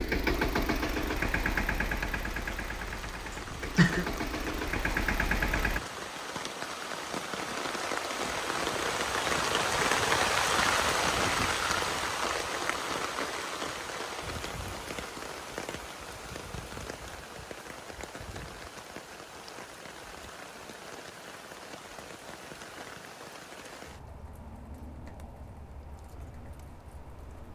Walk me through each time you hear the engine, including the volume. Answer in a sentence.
The engine can be heard from 0.0 to 5.8 s, getting quieter then louder.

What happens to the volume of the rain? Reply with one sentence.
The loudness of the rain goes up, then down.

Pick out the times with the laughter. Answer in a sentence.
You can hear the laughter from 3.3 to 4.0 s.